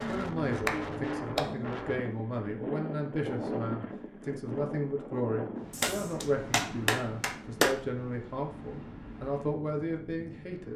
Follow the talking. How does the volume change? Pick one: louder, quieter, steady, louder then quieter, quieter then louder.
steady.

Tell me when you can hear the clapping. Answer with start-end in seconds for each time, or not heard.
0.0-1.8, 5.7-7.8.